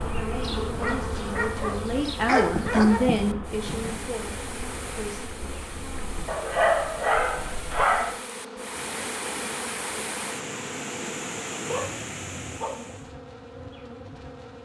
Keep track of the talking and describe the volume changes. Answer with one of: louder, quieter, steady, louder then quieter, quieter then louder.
louder then quieter.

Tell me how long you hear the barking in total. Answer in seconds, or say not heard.
6 s.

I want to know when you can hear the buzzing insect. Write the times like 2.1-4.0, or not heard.
0.0-14.6.